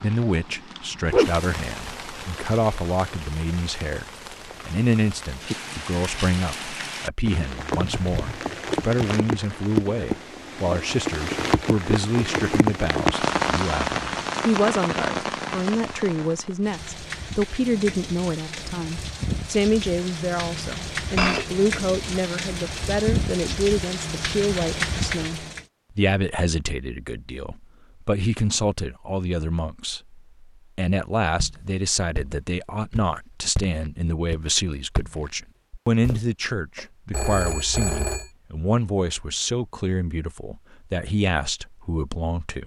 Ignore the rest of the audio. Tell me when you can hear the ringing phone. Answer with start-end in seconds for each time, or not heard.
7.8-8.4, 20.4-21.4, 37.1-38.3.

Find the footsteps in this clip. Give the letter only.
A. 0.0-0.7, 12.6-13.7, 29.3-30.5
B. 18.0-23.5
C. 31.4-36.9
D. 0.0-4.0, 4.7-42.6
C.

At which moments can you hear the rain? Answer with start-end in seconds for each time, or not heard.
0.0-25.6.